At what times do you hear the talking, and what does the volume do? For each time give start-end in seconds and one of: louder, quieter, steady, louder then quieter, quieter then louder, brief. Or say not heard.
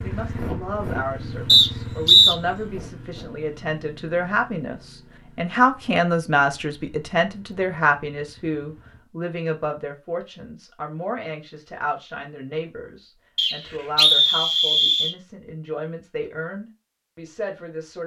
0.0-18.0 louder then quieter.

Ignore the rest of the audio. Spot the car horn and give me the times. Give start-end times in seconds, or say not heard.
not heard.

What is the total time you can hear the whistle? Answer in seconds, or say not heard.
3 s.